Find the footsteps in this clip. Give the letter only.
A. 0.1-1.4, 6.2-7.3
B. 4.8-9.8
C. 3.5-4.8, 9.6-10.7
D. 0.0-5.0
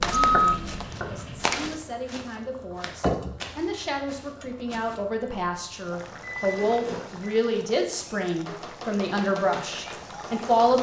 D.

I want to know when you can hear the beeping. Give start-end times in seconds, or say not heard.
0.1-1.4, 6.2-7.3.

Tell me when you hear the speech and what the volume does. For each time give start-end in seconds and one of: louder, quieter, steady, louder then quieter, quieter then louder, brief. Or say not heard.
0.0-10.7 louder.